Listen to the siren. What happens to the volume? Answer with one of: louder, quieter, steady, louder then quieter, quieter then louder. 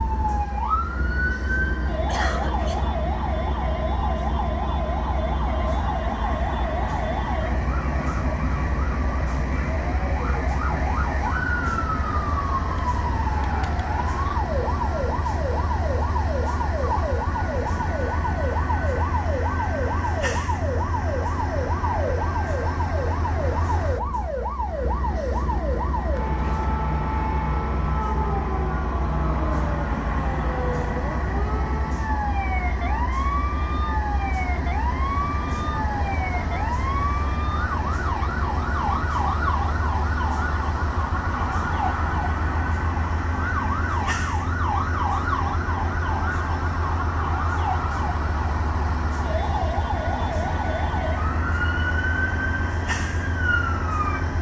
steady.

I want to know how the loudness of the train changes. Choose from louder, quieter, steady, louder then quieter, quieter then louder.
steady.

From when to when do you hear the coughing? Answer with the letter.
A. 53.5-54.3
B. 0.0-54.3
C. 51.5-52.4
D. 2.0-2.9
D.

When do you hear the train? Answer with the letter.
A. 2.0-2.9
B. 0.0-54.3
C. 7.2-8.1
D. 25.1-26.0
B.